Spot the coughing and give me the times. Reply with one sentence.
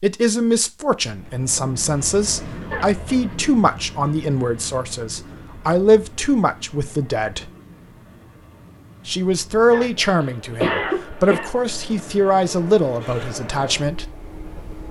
The coughing can be heard from 2.7 to 3.2 s and from 9.7 to 11.5 s.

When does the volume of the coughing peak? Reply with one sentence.
The volume of the coughing peaks at 11 seconds.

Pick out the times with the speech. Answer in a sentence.
You can hear the speech from 0.0 to 7.5 s and from 9.1 to 14.1 s.